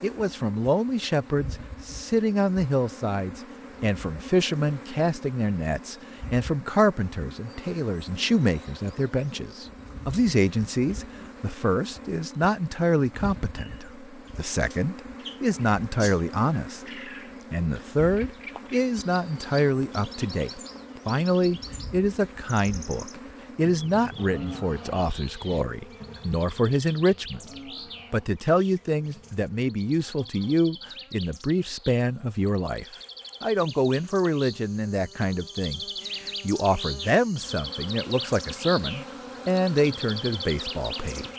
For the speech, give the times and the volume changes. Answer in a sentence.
You can hear the speech from 0.0 to 16.8 s, at a steady volume; from 17.5 to 27.5 s, at a steady volume; and from 28.1 to 41.3 s, at a steady volume.